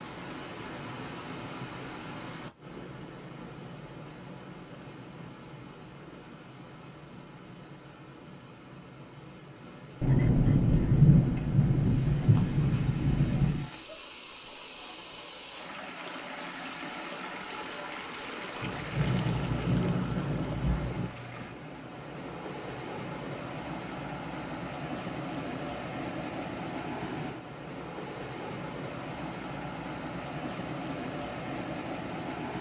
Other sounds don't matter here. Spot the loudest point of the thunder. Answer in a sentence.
The loudest moment of the thunder is at 11 seconds.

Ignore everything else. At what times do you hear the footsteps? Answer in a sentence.
The footsteps can't be heard in this clip.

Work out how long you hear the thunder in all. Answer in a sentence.
You can hear the thunder for 6 seconds altogether.